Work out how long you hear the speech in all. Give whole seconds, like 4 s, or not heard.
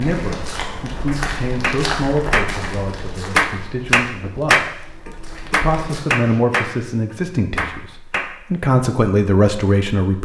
10 s.